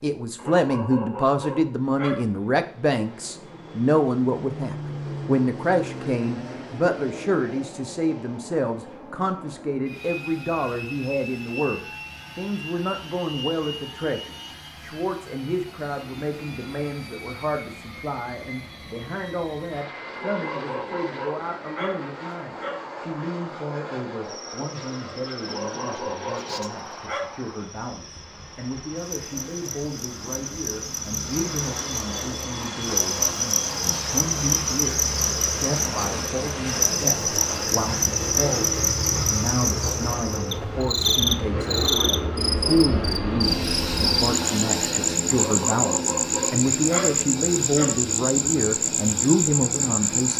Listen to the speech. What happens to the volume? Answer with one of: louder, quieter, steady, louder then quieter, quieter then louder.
quieter then louder.